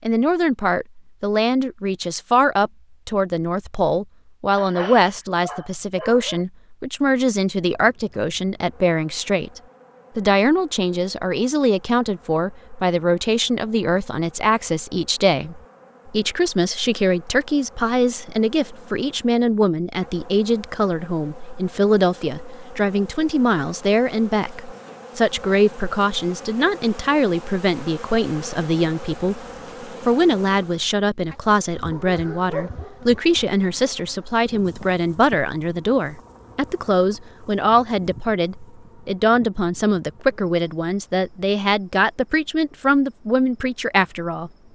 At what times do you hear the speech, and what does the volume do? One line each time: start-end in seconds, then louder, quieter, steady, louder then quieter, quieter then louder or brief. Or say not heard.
0.0-44.5 steady.